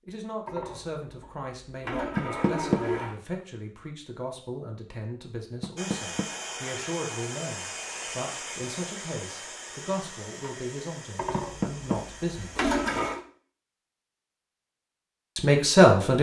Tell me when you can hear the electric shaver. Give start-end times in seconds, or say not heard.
not heard.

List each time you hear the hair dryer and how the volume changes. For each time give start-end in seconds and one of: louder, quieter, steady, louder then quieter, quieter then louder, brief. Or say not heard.
5.8-13.2 quieter.